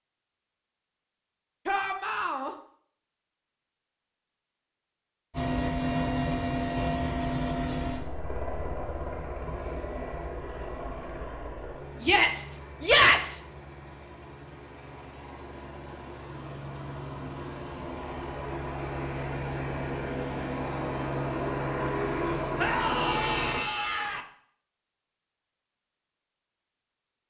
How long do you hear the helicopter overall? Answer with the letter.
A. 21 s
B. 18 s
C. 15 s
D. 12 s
B.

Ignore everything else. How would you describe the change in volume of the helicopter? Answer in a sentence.
The volume of the helicopter goes down, then up.